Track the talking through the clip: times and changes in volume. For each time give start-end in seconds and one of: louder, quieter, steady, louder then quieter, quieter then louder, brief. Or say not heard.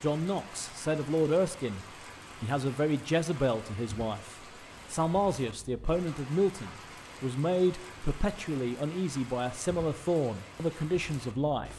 0.0-11.7 steady.